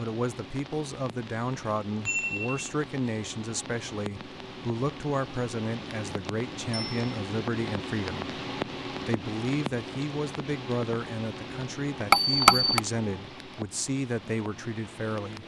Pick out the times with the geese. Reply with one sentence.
You can't hear the geese here.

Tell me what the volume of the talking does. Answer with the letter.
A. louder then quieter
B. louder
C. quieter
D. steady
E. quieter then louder
D.